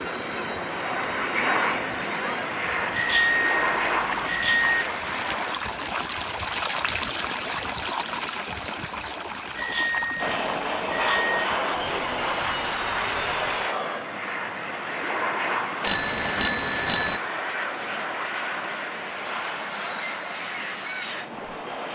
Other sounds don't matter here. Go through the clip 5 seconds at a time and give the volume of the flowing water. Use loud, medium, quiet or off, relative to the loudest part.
medium, loud, medium, medium, medium.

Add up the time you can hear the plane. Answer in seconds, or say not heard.
17 s.